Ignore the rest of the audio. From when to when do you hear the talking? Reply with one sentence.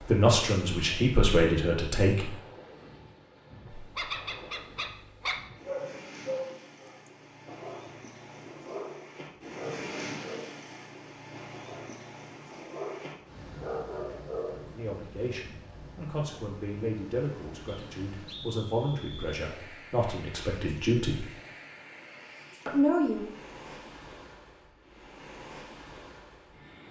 The talking can be heard from 0.0 to 2.3 s, from 14.8 to 21.2 s and from 22.6 to 23.2 s.